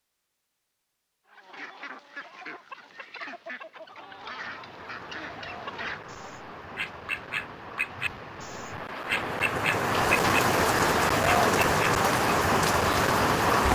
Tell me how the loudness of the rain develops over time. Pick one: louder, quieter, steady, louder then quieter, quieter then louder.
louder.